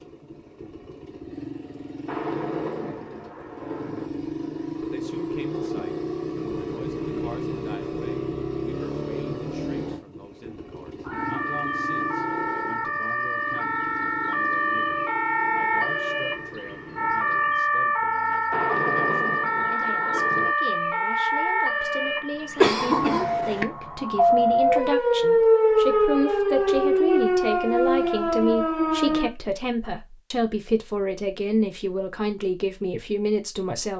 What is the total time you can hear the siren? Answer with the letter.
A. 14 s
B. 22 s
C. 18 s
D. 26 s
C.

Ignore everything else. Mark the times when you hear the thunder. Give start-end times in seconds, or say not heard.
2.0-4.1, 18.5-20.6.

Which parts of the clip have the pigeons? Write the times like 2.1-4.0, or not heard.
not heard.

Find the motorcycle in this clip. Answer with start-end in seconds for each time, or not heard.
0.0-17.7.